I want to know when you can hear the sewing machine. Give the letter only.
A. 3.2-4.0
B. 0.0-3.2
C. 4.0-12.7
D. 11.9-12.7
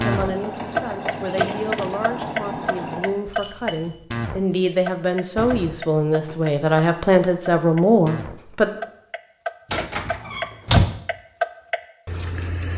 B.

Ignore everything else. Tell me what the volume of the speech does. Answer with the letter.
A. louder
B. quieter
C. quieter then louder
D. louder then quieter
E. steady
A.